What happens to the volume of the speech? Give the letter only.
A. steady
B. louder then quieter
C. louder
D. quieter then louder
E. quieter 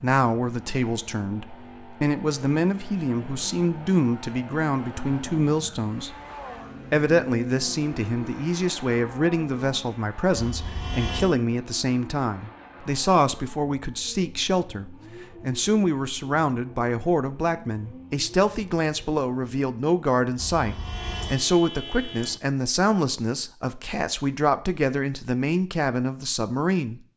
A.